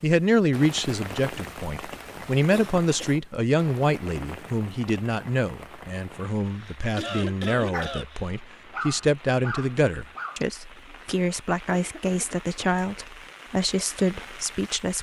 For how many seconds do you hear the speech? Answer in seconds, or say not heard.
15 s.